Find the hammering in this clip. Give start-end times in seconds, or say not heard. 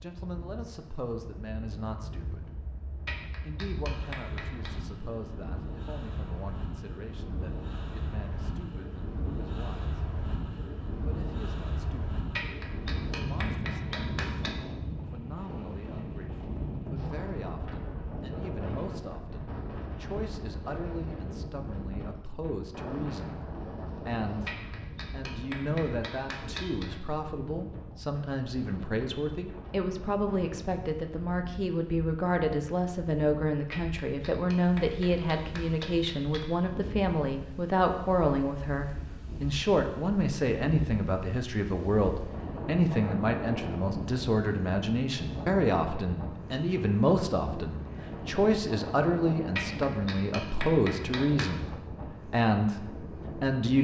3.0-4.7, 12.3-14.5, 24.4-26.9, 33.7-36.5, 49.5-51.6.